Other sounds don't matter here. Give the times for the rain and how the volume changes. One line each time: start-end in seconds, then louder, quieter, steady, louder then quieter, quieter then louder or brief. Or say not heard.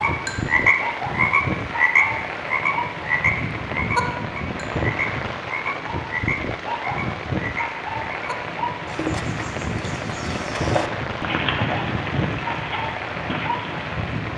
0.0-14.3 steady.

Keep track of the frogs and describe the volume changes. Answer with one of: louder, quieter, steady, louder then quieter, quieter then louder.
quieter.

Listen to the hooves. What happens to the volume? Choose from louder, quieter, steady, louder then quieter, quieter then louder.
louder then quieter.